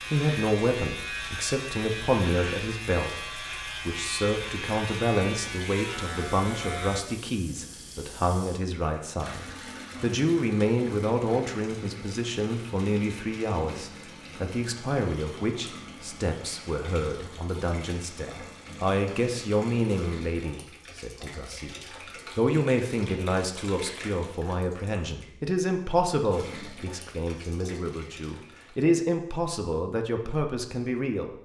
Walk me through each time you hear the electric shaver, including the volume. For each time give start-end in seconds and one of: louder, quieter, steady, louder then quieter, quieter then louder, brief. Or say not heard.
0.0-7.0 steady.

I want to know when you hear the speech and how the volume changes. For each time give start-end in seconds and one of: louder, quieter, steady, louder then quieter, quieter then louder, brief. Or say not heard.
0.0-31.3 steady.